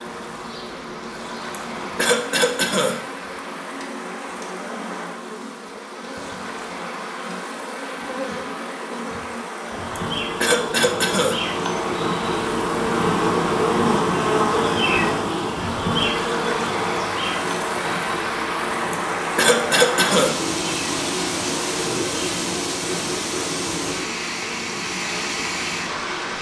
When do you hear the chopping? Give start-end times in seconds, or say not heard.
not heard.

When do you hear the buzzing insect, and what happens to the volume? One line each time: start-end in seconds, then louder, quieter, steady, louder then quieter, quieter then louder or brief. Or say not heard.
0.0-26.3 louder then quieter.